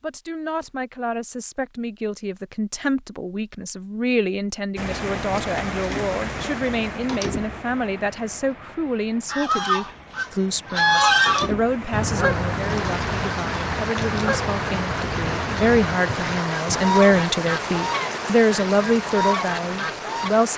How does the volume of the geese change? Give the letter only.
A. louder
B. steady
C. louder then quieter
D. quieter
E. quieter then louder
D.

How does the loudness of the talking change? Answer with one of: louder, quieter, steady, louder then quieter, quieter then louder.
louder.